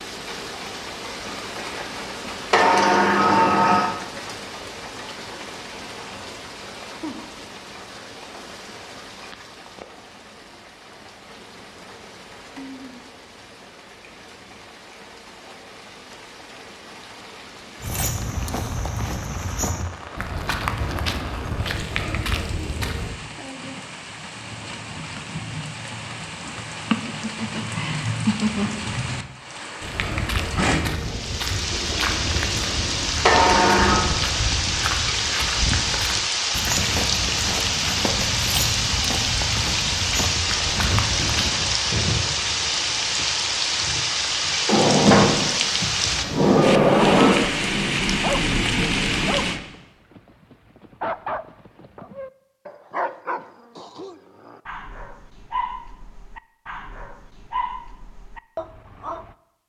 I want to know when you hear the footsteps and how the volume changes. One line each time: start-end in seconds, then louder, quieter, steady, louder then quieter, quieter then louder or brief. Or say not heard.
17.8-23.1 steady
29.8-41.5 steady.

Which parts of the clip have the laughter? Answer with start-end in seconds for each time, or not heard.
26.9-28.9.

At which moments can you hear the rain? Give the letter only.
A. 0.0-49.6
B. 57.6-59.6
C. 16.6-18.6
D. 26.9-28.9
A.